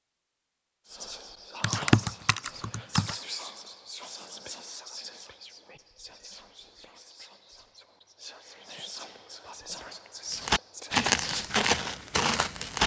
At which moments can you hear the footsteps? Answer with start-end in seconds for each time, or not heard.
10.3-12.8.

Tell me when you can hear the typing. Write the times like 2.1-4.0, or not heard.
1.6-3.1.